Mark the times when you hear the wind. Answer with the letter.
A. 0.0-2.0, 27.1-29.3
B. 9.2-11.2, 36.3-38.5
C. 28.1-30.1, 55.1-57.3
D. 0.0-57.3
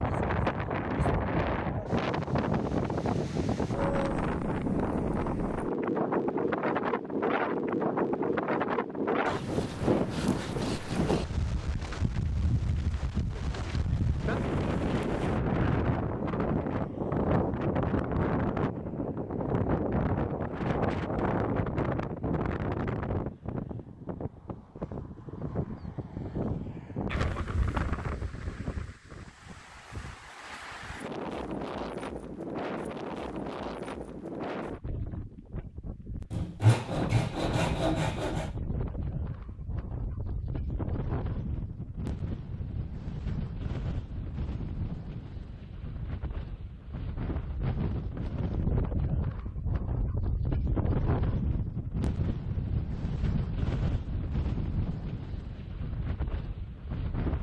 D.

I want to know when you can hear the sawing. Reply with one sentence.
You can hear the sawing from 9.2 to 11.2 s and from 36.3 to 38.5 s.